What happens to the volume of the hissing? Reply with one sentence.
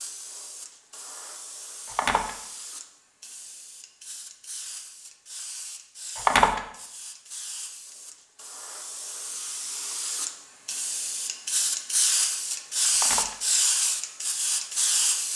The loudness of the hissing goes up.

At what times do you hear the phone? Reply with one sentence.
The phone can be heard from 1.9 to 2.4 s, from 6.2 to 6.6 s and from 12.9 to 13.3 s.